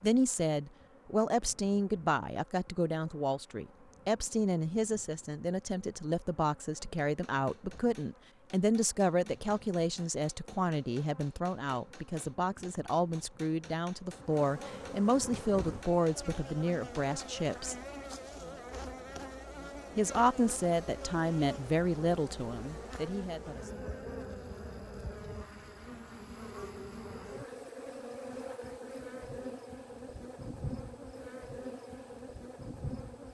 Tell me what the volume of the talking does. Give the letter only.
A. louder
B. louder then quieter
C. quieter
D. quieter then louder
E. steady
E.